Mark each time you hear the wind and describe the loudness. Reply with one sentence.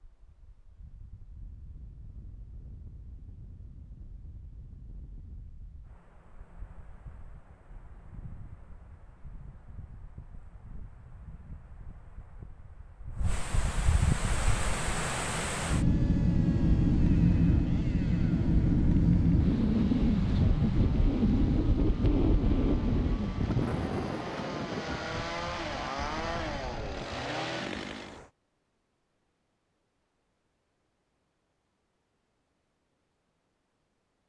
The wind can be heard from 0.0 to 28.3 s, getting louder then quieter.